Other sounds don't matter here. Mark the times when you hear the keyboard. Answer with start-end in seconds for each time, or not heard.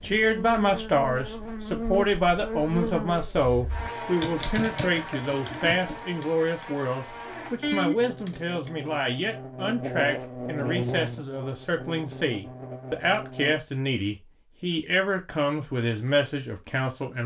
3.4-6.7, 7.6-8.7.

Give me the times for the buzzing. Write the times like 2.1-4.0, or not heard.
0.0-13.6.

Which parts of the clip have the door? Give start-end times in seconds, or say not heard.
not heard.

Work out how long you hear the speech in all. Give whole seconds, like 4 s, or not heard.
17 s.